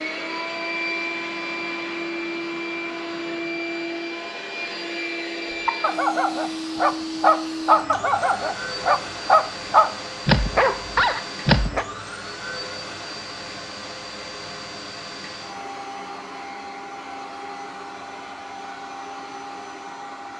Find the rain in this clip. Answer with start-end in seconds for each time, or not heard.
not heard.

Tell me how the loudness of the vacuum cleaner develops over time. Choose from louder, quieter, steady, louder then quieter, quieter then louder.
quieter.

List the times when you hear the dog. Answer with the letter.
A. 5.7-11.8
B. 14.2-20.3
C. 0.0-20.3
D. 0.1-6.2
A.